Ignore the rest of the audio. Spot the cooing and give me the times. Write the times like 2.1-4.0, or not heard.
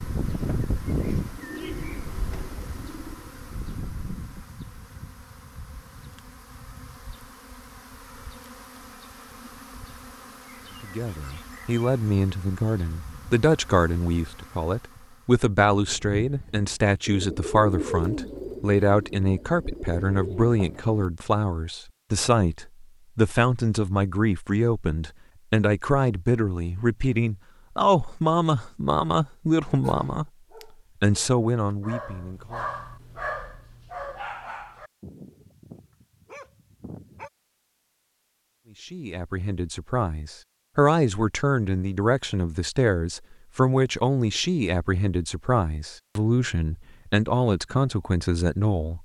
0.0-4.5, 15.8-21.1.